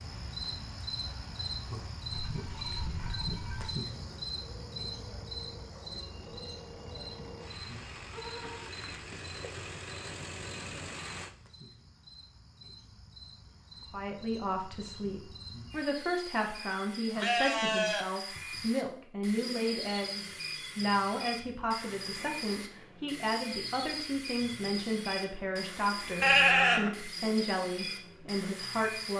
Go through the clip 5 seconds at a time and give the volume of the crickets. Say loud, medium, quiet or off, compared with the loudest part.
loud, medium, quiet, loud, loud, loud.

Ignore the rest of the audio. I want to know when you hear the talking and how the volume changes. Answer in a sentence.
The talking can be heard from 13.9 to 29.1 s, at a steady volume.